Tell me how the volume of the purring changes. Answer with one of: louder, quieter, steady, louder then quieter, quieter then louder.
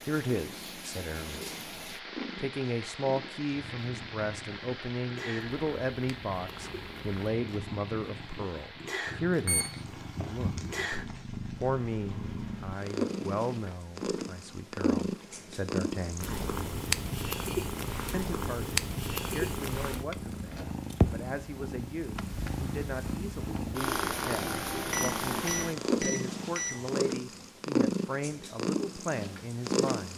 louder.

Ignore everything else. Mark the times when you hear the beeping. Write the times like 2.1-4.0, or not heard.
9.4-11.0, 24.9-27.1.